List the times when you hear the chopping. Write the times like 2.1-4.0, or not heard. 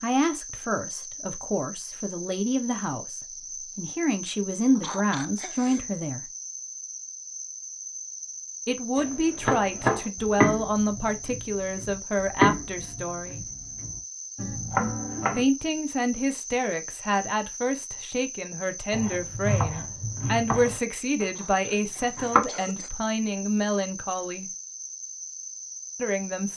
8.9-15.4, 18.9-21.2, 22.0-22.4.